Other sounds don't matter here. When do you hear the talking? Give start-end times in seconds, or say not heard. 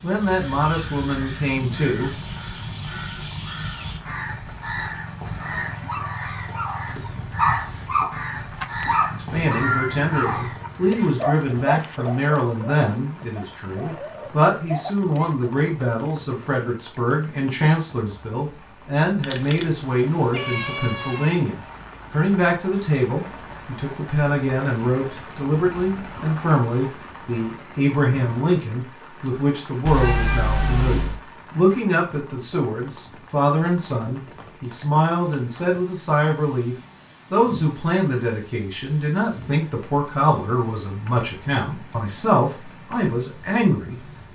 0.0-2.1, 9.2-44.0.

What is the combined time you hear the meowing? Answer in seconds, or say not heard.
4 s.